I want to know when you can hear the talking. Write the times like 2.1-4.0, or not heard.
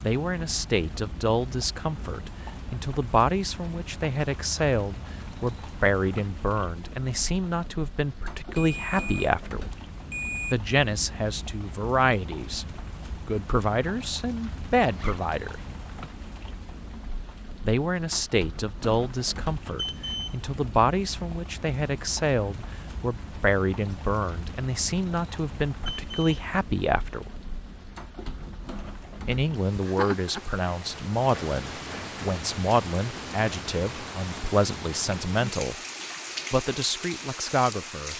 0.0-9.7, 10.5-12.7, 13.2-15.6, 17.6-27.3, 29.2-35.8, 36.5-38.1.